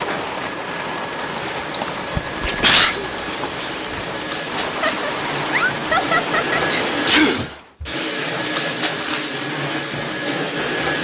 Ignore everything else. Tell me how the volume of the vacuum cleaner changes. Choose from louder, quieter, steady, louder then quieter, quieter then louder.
louder.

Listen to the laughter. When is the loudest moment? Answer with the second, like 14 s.
6 s.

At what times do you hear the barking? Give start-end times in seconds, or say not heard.
not heard.